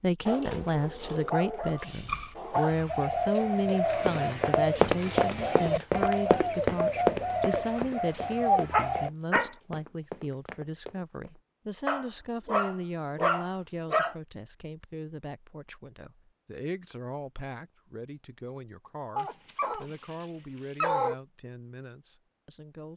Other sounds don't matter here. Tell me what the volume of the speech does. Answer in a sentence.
The volume of the speech goes down.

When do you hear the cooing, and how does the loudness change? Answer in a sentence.
The cooing can be heard from 2.6 to 9.1 s, at a steady volume.